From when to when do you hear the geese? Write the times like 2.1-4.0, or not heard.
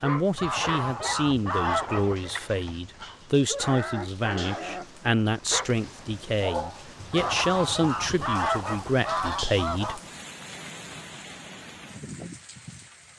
0.3-2.1, 7.1-10.0.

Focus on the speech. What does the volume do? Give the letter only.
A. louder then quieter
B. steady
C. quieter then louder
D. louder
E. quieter
B.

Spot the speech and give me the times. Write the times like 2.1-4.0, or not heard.
0.0-10.0.